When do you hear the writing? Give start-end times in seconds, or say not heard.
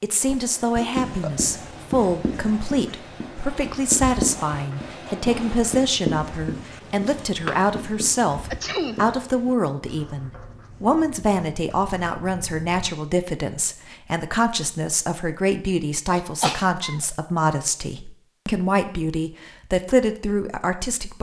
0.9-12.9.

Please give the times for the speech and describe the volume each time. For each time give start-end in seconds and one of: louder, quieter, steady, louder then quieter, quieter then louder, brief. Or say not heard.
0.0-21.1 steady.